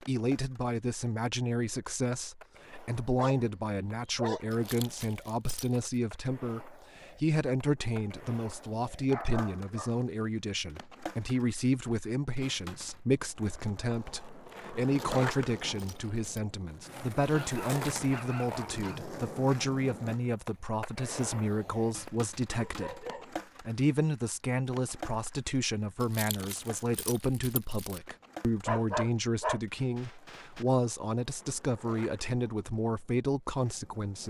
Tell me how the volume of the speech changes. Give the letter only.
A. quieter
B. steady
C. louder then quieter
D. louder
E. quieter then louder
B.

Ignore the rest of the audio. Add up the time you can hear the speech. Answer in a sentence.
You can hear the speech for 34 seconds altogether.